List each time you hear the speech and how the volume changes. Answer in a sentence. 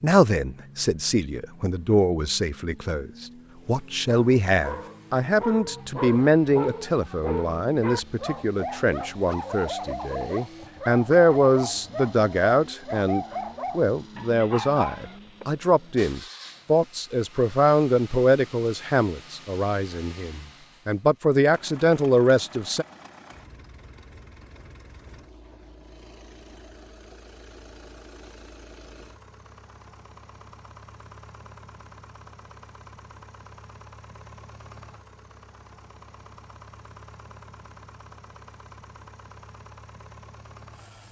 You can hear the speech from 0.0 to 22.9 s, at a steady volume.